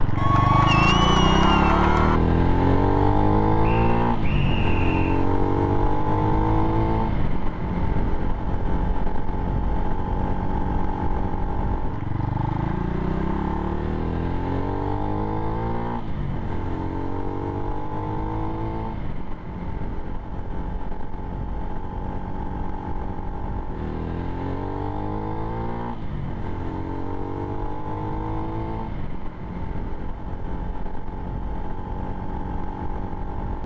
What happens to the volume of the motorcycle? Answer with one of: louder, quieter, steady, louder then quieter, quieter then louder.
quieter.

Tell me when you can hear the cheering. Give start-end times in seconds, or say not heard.
0.1-2.2.